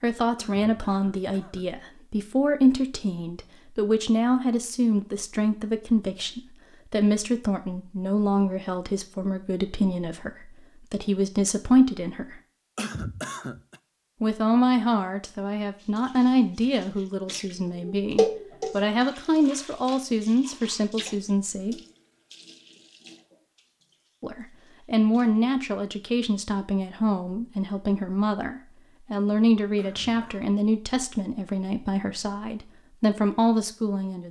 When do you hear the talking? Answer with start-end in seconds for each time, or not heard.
0.0-12.4, 14.2-21.8, 24.2-34.2.